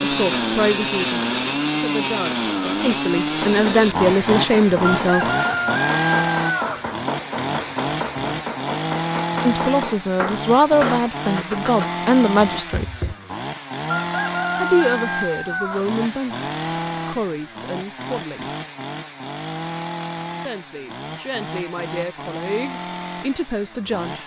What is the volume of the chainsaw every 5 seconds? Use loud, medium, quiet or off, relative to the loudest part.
loud, loud, medium, medium, medium.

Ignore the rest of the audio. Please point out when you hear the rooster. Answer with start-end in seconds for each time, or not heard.
4.9-6.8, 13.9-15.9.